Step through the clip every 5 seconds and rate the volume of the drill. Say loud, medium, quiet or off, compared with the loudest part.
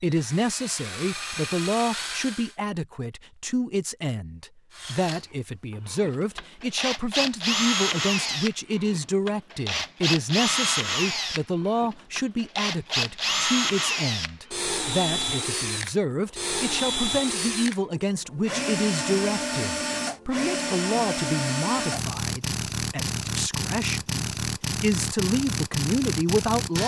medium, loud, loud, loud, loud, loud.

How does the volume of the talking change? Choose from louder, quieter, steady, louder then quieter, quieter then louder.
steady.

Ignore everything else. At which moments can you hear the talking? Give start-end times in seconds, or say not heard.
0.0-26.8.